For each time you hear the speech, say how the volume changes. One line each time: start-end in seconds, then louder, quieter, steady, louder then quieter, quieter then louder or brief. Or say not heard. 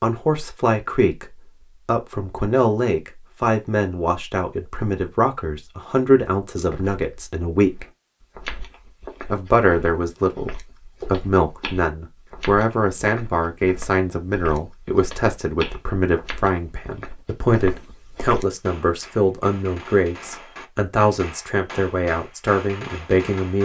0.0-7.8 steady
9.3-10.5 brief
11.1-23.6 steady.